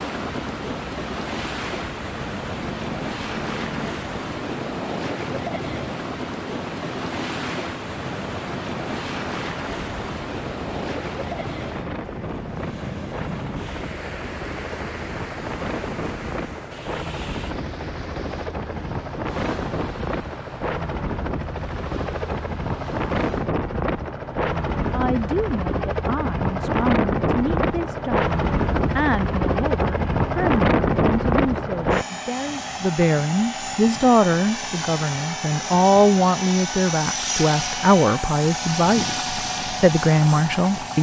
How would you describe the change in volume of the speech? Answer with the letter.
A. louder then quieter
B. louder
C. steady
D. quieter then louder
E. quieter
B.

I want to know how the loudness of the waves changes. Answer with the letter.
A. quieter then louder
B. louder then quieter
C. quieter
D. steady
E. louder
C.